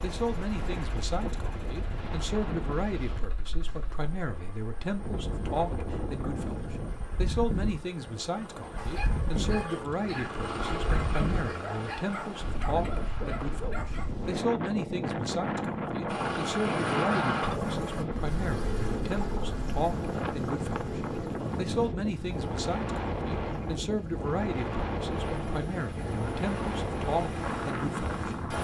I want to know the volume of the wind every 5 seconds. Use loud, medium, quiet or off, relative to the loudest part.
medium, loud, loud, loud, loud, loud.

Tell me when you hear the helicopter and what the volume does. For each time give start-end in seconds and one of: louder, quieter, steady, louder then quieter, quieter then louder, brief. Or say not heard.
0.1-13.8 louder
16.1-28.5 quieter then louder.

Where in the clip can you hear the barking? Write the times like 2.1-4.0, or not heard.
8.8-14.4.